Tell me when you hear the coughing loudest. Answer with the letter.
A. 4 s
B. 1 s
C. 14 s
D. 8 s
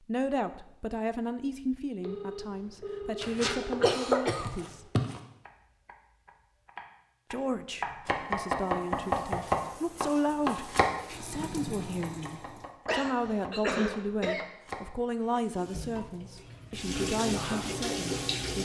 A.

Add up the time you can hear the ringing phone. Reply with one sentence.
The ringing phone can be heard for 2 seconds in total.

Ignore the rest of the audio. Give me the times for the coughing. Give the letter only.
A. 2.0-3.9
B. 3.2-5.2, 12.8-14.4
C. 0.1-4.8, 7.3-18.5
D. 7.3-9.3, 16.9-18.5
B.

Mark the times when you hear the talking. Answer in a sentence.
The talking can be heard from 0.1 to 4.8 s and from 7.3 to 18.5 s.